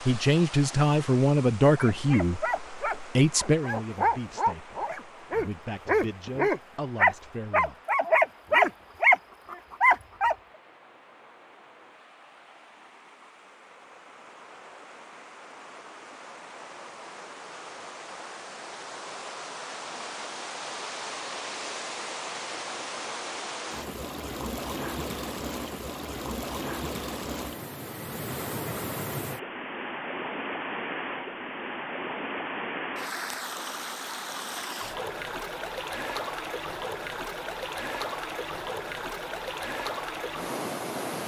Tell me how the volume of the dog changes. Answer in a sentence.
The loudness of the dog goes up.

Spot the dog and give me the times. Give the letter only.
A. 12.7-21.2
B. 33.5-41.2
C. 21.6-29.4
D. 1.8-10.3
D.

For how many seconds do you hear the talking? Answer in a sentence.
You can hear the talking for 8 seconds altogether.